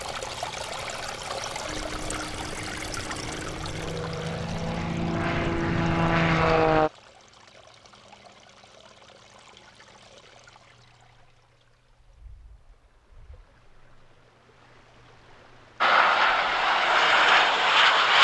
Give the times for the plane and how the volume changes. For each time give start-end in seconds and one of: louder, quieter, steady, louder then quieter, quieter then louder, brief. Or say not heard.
1.6-6.9 louder
15.8-18.1 brief.